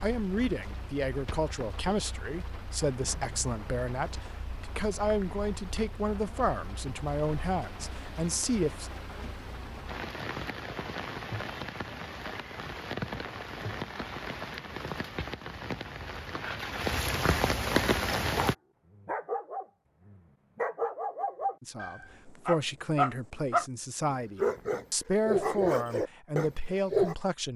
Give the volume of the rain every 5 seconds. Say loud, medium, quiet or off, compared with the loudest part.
quiet, quiet, medium, loud, off, off.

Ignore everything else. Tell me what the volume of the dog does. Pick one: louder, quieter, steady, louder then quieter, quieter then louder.
louder.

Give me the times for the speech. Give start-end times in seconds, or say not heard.
0.0-8.9, 21.6-27.5.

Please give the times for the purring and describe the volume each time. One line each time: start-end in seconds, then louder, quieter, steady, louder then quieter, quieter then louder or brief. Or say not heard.
not heard.